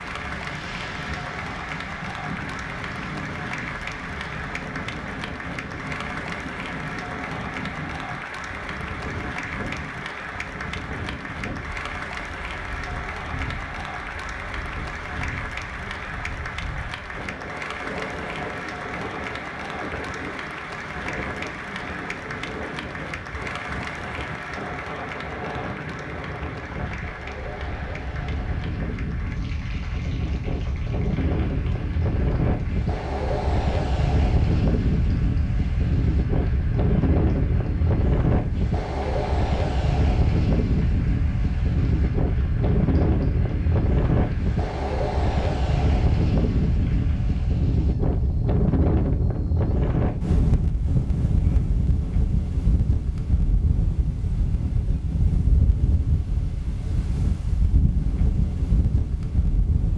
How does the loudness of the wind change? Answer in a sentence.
The loudness of the wind goes up.